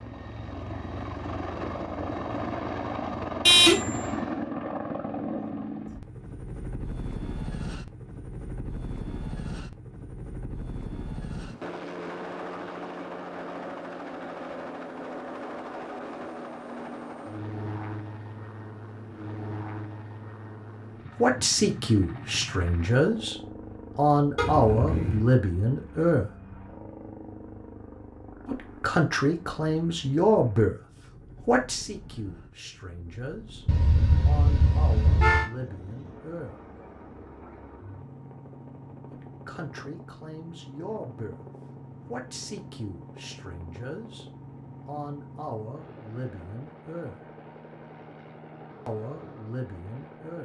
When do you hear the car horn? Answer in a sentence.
The car horn can be heard from 3.5 to 4.0 s, from 24.4 to 25.3 s and from 33.6 to 35.5 s.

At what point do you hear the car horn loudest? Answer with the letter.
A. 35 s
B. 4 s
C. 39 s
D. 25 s
B.